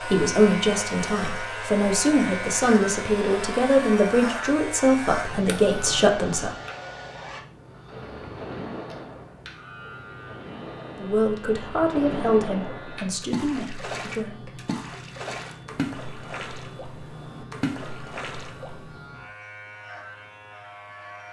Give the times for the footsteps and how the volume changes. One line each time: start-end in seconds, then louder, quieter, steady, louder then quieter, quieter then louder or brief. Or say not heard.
not heard.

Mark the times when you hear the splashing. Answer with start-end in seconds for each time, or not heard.
7.7-19.1.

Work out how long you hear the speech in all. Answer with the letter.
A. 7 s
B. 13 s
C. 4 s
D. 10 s
D.